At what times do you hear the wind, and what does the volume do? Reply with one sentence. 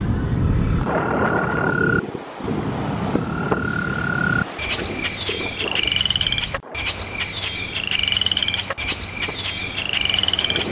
The wind can be heard from 0.0 to 10.6 s, getting quieter.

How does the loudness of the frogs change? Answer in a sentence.
The volume of the frogs stays about the same.